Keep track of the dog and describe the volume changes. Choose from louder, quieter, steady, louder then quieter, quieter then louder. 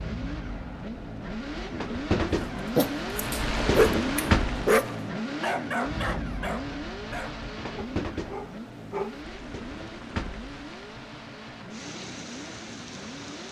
quieter.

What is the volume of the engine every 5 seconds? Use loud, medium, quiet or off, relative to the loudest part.
loud, loud, medium.